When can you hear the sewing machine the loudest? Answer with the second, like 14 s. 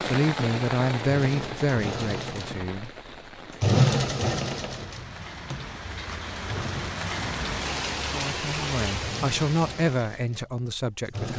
4 s.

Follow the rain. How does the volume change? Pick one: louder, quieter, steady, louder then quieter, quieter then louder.
quieter then louder.